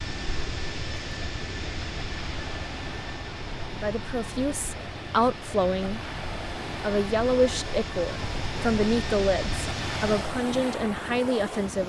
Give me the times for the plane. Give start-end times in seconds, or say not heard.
0.0-10.4.